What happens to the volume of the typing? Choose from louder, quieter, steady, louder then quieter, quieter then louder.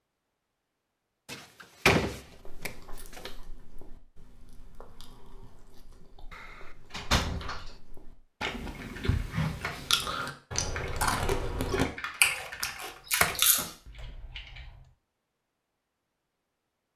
louder.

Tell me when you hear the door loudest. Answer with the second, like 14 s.
2 s.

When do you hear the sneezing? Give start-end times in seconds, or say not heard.
not heard.